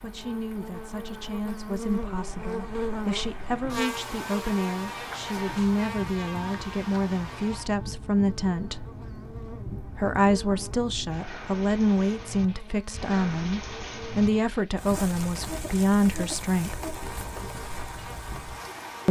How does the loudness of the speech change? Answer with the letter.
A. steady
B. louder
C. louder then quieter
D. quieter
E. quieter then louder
B.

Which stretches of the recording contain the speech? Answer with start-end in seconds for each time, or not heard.
0.0-8.8, 9.9-16.8.